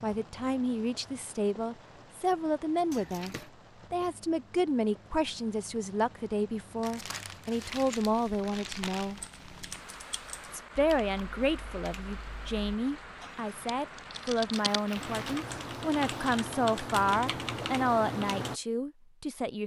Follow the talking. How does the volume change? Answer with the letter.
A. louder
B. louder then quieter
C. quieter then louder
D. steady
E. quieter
D.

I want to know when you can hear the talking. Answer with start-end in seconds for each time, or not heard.
0.0-9.2, 10.5-19.6.